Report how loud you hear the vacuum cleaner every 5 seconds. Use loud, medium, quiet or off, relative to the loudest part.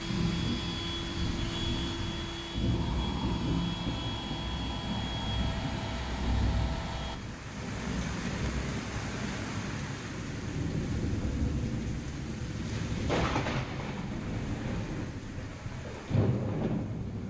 loud, loud, off, off.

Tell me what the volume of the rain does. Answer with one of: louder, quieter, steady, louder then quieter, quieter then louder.
steady.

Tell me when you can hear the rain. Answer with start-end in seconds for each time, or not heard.
0.0-17.2.